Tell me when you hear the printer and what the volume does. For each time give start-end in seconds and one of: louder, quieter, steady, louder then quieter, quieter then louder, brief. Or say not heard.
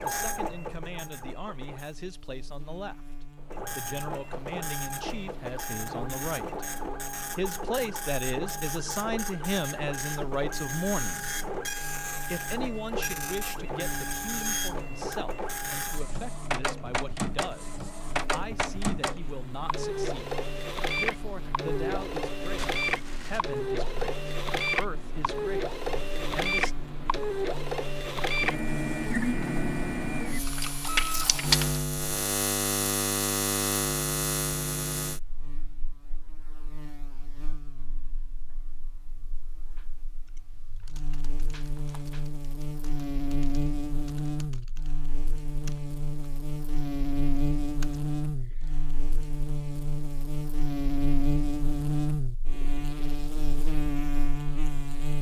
0.0-1.9 brief
3.4-31.9 louder.